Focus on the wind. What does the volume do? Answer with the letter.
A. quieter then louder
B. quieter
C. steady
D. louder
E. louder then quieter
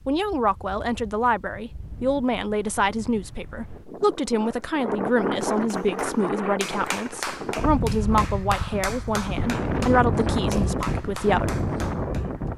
D.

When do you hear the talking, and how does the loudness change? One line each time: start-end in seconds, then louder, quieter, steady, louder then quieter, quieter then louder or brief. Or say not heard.
0.1-11.6 steady.